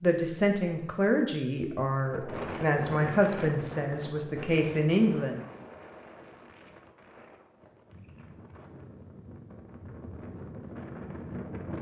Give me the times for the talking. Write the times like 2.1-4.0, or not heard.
0.0-5.4.